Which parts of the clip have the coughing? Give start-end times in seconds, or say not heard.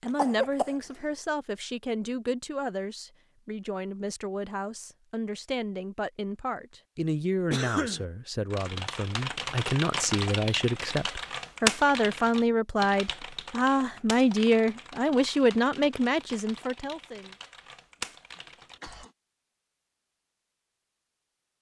0.1-0.8, 7.5-8.1, 18.3-19.1.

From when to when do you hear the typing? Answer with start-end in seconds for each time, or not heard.
8.5-19.1.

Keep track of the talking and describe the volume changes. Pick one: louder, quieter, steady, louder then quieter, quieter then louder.
louder.